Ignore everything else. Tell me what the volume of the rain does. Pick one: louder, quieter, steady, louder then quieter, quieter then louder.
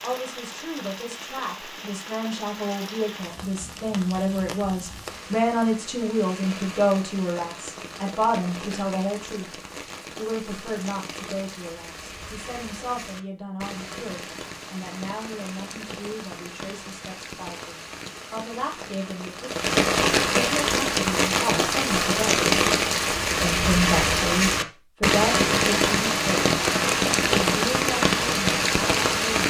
louder.